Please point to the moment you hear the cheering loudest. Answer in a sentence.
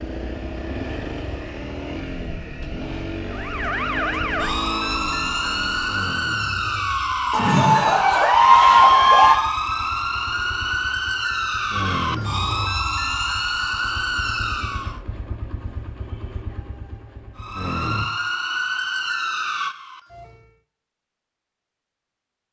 The loudest moment of the cheering is at 9 seconds.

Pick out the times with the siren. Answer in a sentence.
The siren can be heard from 3.2 to 15.0 s and from 17.4 to 20.6 s.